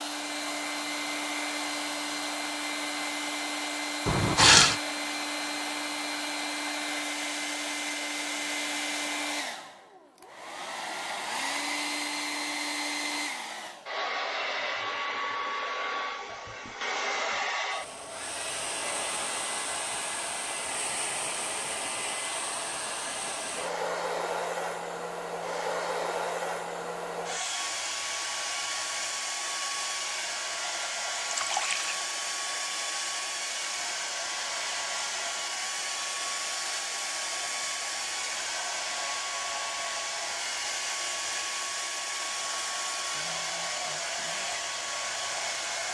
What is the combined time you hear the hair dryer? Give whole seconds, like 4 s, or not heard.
46 s.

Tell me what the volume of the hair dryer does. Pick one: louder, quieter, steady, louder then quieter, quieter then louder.
steady.